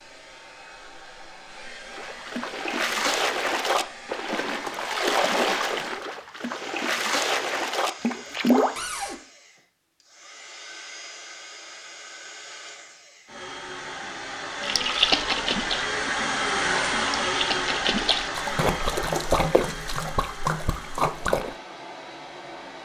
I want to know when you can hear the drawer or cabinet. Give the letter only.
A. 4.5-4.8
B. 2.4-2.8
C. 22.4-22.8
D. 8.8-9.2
D.